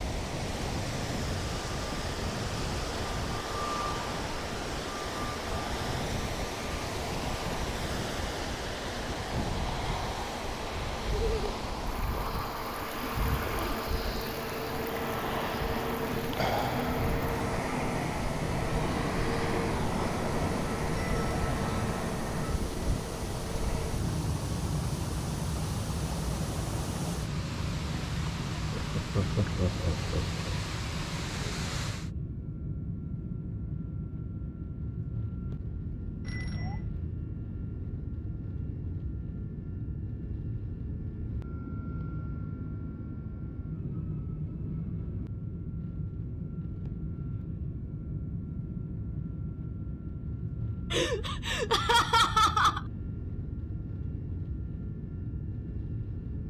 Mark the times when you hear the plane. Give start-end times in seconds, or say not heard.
0.0-56.4.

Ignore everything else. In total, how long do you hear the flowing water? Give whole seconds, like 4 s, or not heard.
32 s.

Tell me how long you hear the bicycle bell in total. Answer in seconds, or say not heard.
2 s.